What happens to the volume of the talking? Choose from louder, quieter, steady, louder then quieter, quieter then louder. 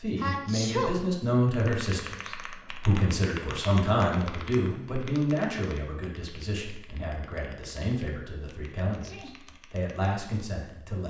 quieter.